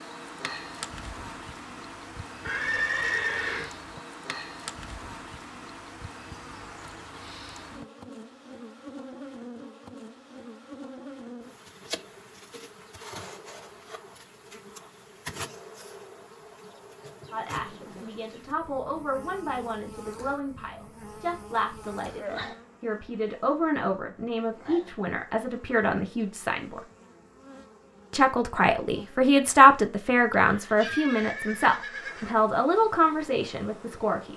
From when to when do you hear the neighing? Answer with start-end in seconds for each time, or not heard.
2.5-3.7, 30.4-32.4.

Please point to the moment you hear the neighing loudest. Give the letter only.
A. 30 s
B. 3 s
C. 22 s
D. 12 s
B.